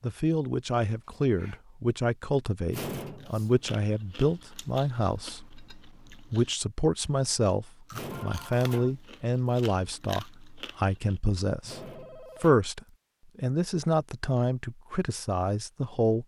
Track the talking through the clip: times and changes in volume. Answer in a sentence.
The talking can be heard from 0.0 to 16.2 s, at a steady volume.